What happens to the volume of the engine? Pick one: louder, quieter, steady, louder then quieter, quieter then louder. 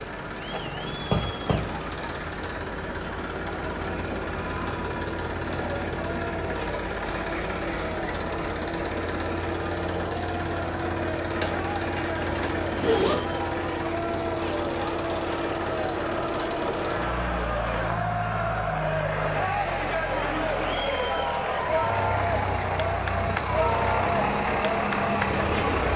steady.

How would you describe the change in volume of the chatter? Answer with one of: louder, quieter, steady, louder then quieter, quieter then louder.
louder.